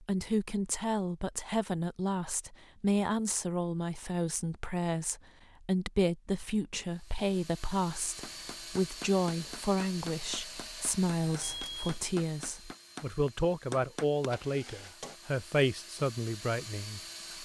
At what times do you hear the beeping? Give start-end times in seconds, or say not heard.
11.2-12.1.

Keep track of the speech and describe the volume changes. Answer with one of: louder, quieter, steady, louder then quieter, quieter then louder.
steady.